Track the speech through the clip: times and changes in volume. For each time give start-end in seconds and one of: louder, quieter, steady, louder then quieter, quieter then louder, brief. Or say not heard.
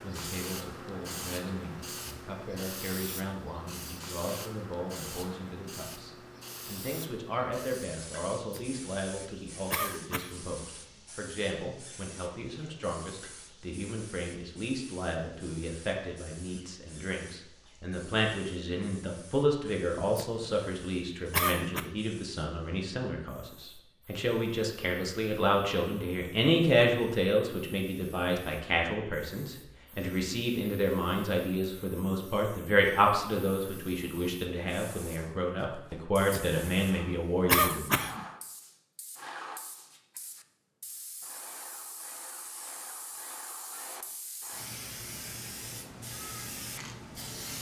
0.0-37.8 louder.